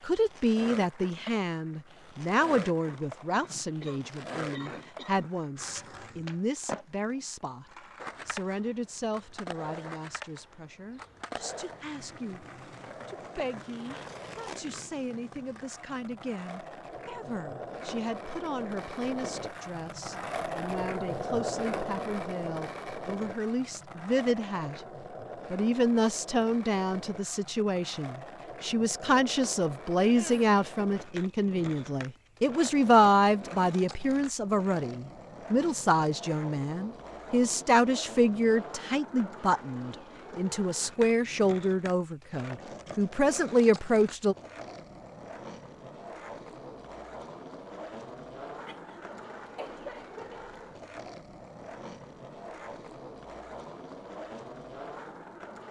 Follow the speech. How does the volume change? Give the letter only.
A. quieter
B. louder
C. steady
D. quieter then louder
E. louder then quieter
D.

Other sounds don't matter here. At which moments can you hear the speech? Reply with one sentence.
You can hear the speech from 0.1 to 7.7 s, from 8.2 to 12.4 s, from 13.1 to 24.8 s and from 25.5 to 44.4 s.